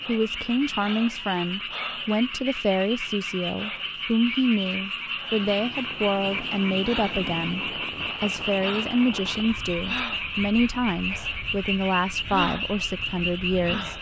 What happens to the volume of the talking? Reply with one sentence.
The volume of the talking stays about the same.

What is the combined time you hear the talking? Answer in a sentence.
You can hear the talking for 14 seconds altogether.